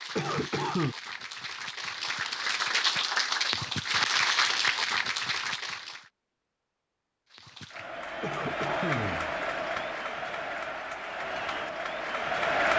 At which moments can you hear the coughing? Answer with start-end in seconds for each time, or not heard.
0.1-0.9, 8.2-9.8.